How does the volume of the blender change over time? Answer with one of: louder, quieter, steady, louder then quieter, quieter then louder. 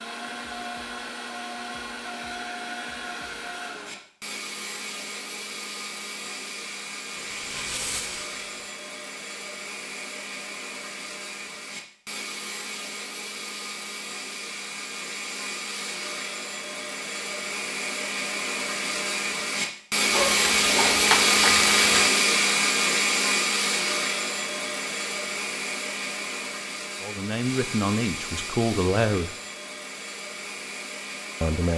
louder then quieter.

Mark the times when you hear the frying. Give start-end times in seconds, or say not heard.
7.1-8.8, 20.1-22.1.